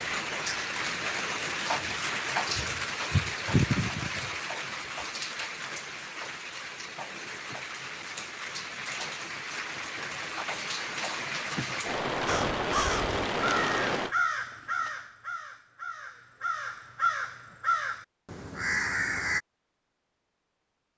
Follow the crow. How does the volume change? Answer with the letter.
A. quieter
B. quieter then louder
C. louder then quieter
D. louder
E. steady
B.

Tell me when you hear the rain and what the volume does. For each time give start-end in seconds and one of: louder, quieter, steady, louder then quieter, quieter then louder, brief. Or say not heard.
0.0-14.2 quieter then louder.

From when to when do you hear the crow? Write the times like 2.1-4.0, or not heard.
12.2-19.4.